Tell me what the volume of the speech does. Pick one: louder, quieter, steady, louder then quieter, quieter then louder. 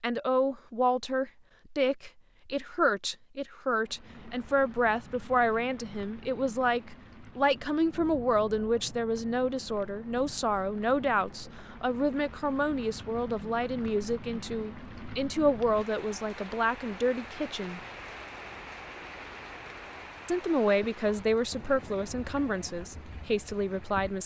steady.